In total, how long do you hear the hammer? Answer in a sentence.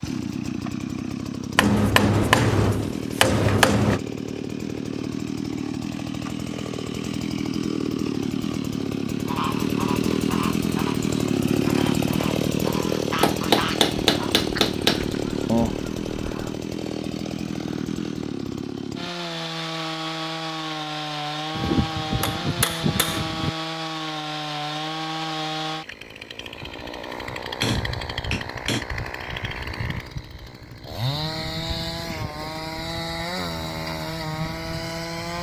The hammer can be heard for 8 seconds in total.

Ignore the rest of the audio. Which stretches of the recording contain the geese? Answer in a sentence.
The geese can be heard from 9.2 to 16.6 s.